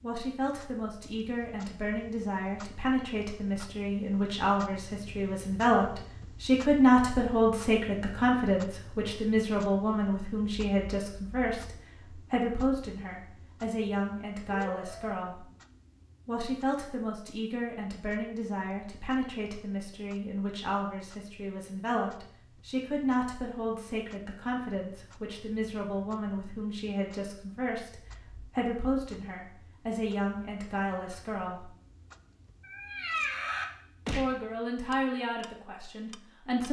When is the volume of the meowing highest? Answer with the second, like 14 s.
33 s.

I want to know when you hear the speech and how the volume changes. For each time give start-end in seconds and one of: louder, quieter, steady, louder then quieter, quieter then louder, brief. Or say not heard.
0.0-15.4 louder then quieter
16.2-31.7 steady
34.1-36.6 brief.